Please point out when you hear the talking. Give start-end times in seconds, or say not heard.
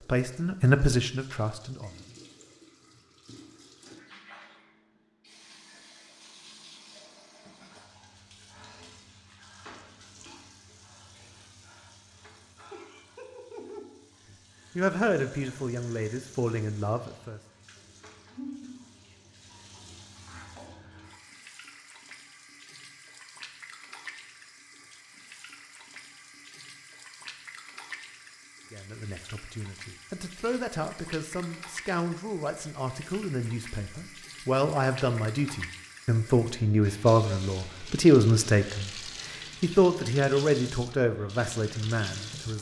0.0-1.9, 14.8-17.4, 28.7-42.5.